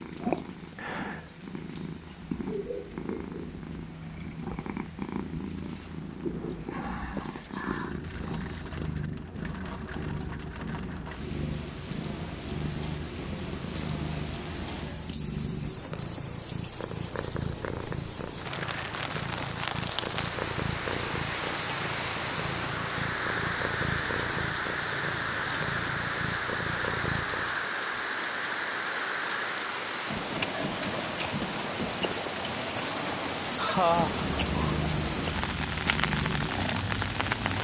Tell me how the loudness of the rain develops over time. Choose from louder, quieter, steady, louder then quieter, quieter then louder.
louder.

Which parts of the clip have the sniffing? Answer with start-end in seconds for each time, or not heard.
6.5-8.8, 13.7-15.7, 33.5-34.3.